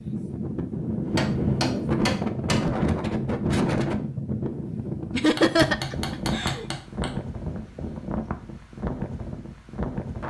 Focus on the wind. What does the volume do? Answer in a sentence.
The loudness of the wind goes down.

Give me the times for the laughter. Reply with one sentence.
The laughter can be heard from 5.1 to 6.7 s.